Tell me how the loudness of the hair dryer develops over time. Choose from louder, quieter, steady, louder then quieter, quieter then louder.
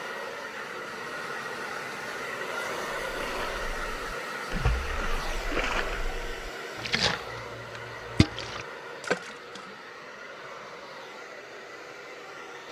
quieter.